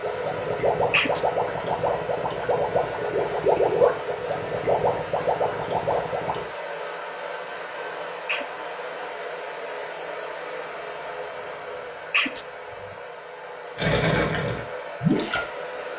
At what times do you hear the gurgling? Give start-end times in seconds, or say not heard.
0.0-6.5, 13.8-15.4.